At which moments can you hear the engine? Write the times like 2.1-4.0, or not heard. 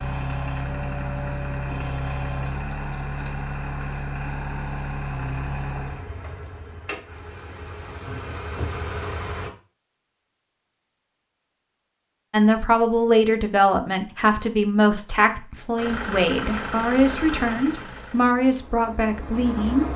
0.0-9.5, 15.8-19.9.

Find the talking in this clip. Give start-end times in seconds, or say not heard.
12.3-19.9.